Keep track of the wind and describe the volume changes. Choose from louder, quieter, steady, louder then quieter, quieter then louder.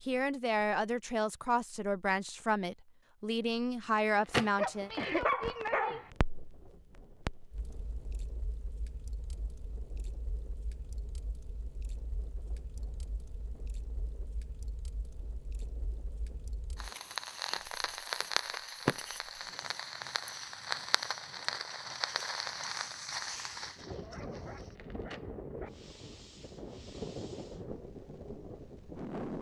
louder.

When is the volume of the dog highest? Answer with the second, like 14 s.
5 s.